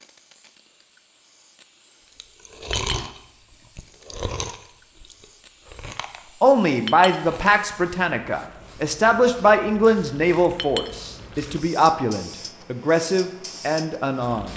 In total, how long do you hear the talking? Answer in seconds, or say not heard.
8 s.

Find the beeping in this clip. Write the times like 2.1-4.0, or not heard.
not heard.